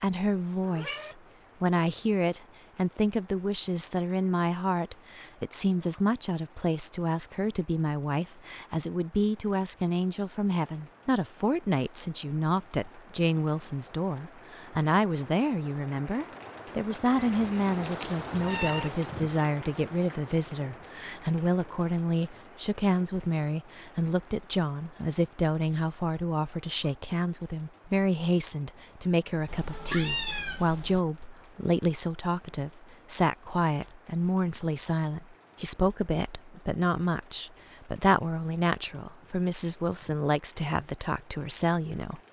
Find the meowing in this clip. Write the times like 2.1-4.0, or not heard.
0.6-1.1, 17.1-18.9, 29.4-31.0.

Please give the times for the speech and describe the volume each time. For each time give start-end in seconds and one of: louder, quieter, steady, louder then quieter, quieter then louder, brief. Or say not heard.
0.0-42.2 steady.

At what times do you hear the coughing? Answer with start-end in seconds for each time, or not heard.
not heard.